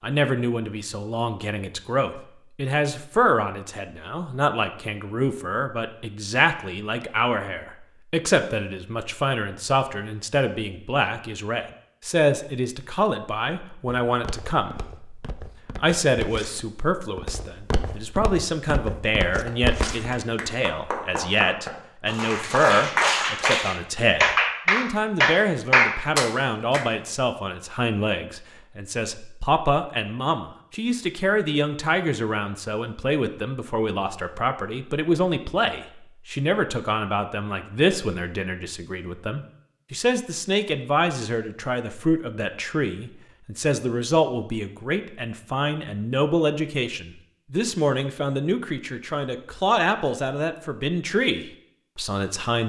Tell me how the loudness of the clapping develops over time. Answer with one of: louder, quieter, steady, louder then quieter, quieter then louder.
louder.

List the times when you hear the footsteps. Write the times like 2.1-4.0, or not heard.
14.1-20.2.